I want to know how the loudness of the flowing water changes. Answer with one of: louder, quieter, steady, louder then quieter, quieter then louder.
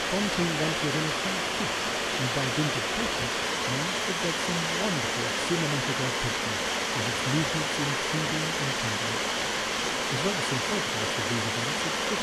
steady.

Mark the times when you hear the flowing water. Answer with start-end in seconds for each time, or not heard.
0.0-12.1.